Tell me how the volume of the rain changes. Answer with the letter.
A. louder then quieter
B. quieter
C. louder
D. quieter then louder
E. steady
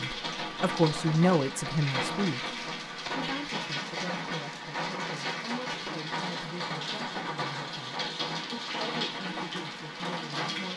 E.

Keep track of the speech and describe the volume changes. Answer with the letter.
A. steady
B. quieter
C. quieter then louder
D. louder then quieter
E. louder
B.